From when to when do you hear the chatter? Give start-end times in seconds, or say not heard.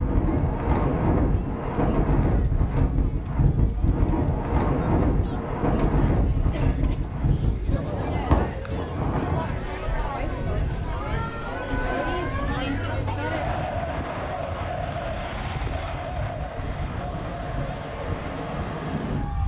0.1-19.4.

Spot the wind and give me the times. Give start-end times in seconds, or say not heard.
0.0-19.4.